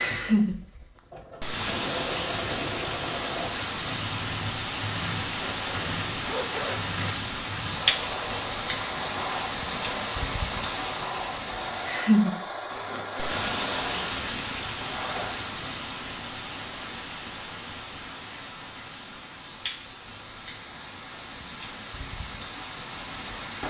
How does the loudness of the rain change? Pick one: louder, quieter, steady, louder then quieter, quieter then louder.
quieter.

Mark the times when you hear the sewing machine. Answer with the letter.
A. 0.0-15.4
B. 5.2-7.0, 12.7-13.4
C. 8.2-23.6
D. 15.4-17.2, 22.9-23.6
A.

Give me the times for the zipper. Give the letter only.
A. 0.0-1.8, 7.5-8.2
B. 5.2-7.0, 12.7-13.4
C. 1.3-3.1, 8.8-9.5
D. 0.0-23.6
B.